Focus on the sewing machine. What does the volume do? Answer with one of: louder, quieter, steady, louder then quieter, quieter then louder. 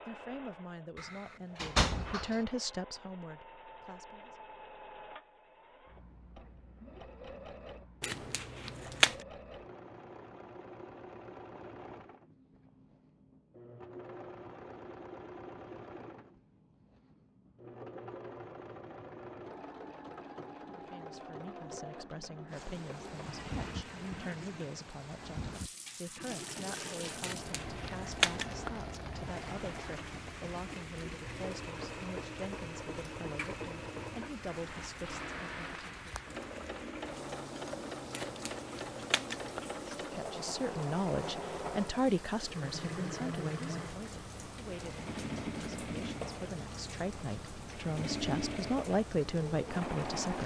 louder.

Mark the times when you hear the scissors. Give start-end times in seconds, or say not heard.
8.0-9.2, 27.2-28.7, 38.1-39.6.